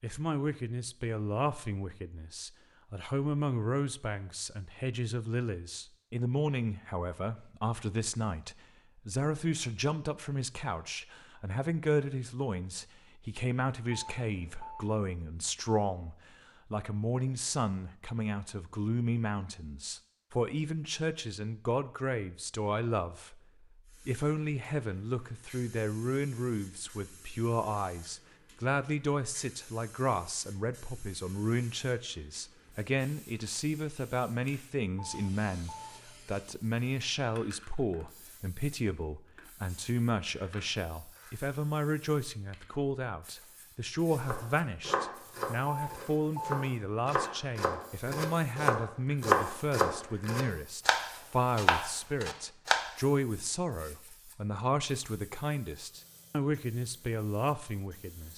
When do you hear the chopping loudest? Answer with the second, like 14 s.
49 s.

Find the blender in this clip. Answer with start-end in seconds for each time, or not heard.
not heard.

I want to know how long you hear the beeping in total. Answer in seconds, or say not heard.
3 s.